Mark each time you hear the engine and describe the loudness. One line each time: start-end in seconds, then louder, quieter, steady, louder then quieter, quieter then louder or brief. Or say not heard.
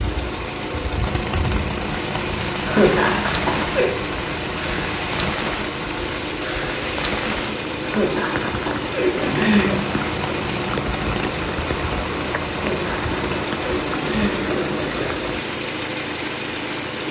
0.0-17.0 steady.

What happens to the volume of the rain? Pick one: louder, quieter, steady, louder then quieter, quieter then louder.
steady.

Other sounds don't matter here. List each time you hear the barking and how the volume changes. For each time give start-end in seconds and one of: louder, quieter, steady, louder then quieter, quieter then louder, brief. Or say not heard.
not heard.